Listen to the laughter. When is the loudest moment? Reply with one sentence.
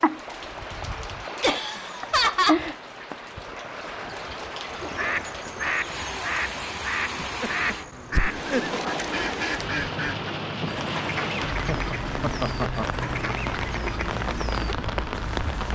The loudest moment of the laughter is at 2 seconds.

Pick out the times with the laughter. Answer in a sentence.
The laughter can be heard from 1.4 to 2.6 s, from 7.2 to 8.8 s and from 11.7 to 12.8 s.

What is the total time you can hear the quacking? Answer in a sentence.
The quacking can be heard for 11 seconds in total.